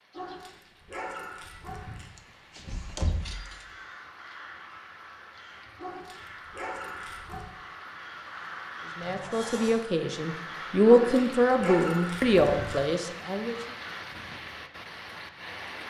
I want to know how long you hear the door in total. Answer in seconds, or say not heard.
2 s.